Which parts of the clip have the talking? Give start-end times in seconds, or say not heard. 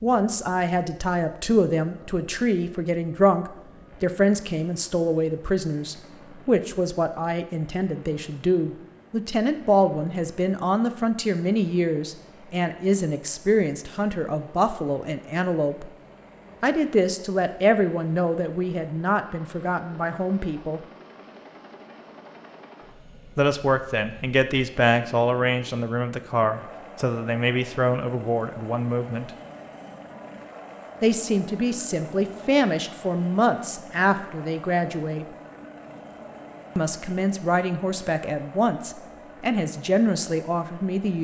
0.0-15.9, 16.6-20.8, 23.4-29.3, 31.0-35.2, 36.8-41.1.